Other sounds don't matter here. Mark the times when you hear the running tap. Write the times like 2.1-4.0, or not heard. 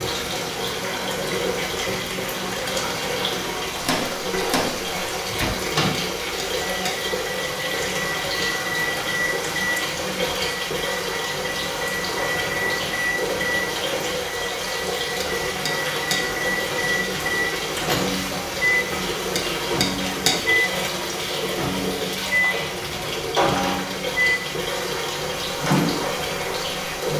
0.0-27.1.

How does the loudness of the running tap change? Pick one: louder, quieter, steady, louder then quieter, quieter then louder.
steady.